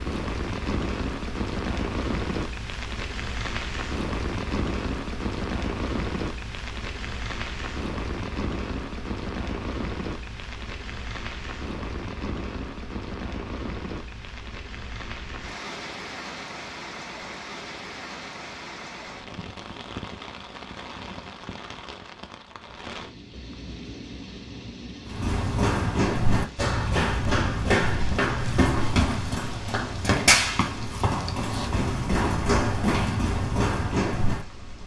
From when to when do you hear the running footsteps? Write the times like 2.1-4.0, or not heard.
25.1-34.5.